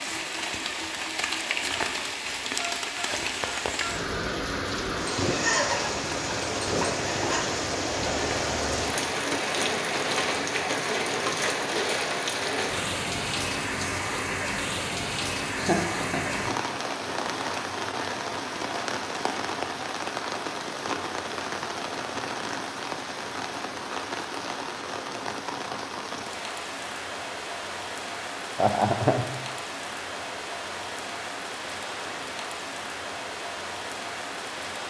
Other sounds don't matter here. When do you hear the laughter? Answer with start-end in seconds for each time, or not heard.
5.2-7.5, 15.6-16.6, 28.6-29.2.